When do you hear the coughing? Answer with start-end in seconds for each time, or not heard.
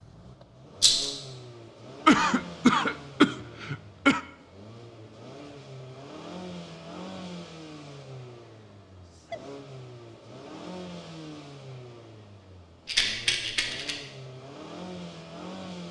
2.0-4.2.